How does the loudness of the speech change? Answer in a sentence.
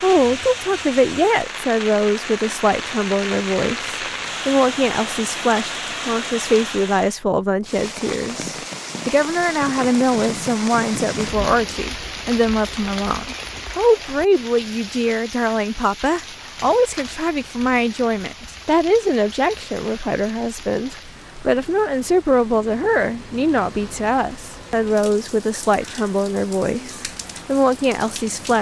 The loudness of the speech stays about the same.